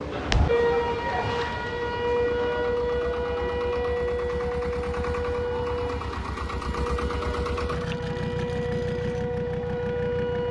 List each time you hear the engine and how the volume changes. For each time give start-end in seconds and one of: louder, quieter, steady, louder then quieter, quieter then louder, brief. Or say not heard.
0.0-10.4 louder.